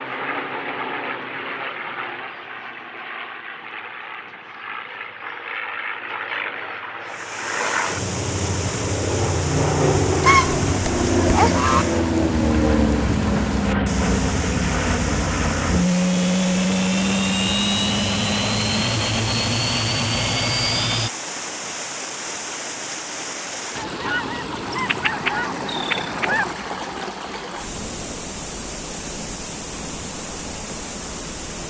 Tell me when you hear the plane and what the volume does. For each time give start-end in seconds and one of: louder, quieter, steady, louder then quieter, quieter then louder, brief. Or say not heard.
0.0-21.1 louder.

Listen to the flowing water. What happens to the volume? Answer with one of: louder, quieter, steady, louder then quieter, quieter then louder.
steady.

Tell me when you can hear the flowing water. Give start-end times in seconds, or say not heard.
7.0-31.6.